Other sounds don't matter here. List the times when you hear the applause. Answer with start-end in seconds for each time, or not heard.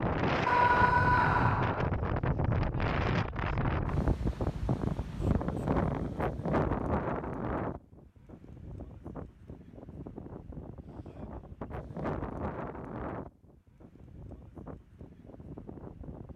not heard.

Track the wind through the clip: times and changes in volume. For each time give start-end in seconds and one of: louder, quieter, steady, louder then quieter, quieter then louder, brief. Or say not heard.
0.0-16.3 quieter.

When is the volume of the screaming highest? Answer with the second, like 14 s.
1 s.